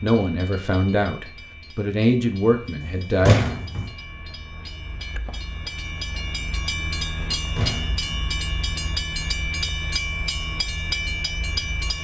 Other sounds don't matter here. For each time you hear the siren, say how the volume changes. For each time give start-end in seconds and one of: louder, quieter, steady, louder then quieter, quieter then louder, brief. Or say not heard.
not heard.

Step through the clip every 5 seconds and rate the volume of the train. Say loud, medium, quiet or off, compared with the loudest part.
quiet, loud, loud.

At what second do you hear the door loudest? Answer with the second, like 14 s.
3 s.